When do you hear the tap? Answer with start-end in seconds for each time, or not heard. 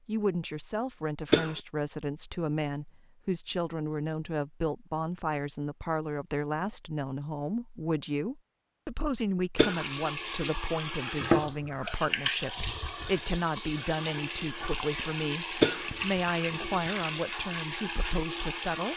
9.6-18.9.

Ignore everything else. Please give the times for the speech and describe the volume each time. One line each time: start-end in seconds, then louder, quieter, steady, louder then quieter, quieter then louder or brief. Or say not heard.
0.1-18.9 steady.